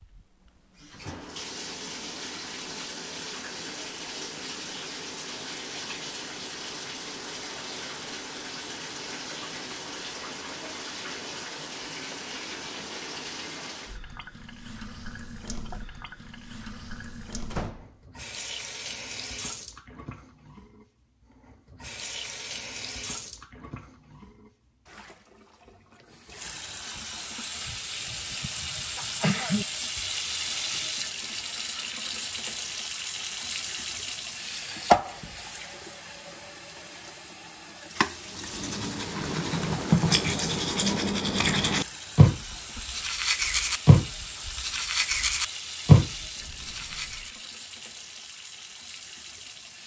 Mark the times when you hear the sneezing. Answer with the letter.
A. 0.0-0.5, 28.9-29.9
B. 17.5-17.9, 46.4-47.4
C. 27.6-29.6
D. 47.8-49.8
C.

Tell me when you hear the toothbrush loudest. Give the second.
46 s.